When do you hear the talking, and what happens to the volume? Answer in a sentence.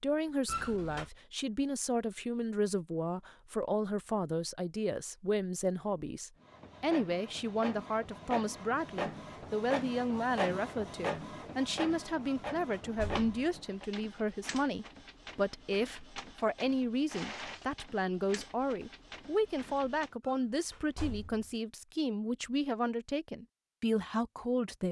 You can hear the talking from 0.0 to 24.8 s, at a steady volume.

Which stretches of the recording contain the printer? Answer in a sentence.
The printer can be heard from 6.4 to 20.1 s.